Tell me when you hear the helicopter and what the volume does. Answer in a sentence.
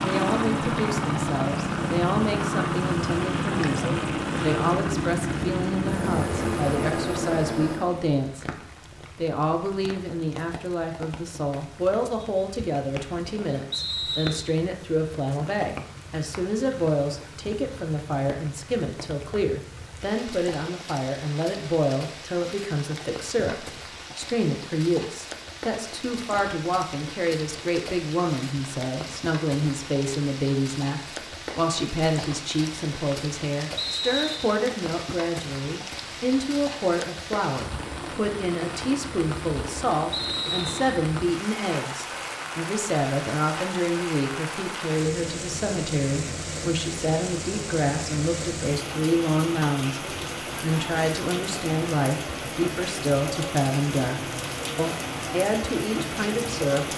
You can hear the helicopter from 0.0 to 8.2 s, at a steady volume.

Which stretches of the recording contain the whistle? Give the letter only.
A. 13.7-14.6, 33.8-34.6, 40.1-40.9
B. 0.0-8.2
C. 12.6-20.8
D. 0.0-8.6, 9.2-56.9
A.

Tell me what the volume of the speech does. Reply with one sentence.
The volume of the speech stays about the same.